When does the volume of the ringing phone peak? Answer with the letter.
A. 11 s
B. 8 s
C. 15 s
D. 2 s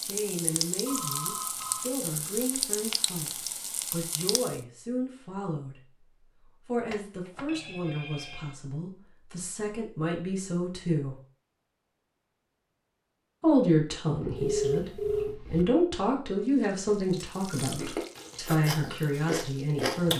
C.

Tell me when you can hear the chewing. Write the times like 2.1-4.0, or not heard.
14.1-15.7, 17.8-20.1.